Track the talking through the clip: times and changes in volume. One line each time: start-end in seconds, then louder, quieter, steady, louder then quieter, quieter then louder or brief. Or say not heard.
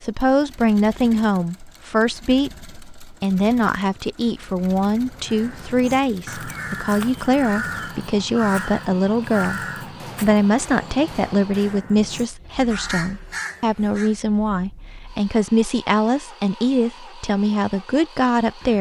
0.0-18.7 steady.